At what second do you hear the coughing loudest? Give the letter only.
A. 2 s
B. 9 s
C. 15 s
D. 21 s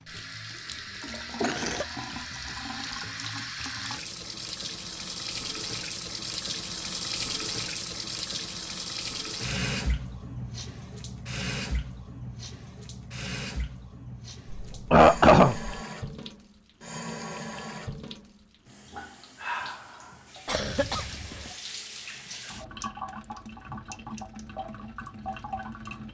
C.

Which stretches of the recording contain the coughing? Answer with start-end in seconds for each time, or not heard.
1.4-1.9, 14.5-15.8, 20.4-21.5.